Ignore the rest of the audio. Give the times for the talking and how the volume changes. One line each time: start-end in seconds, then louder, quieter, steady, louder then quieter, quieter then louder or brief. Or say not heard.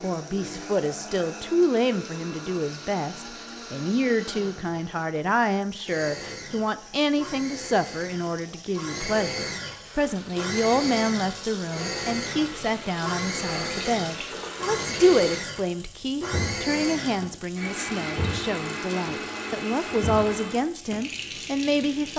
0.0-22.1 steady.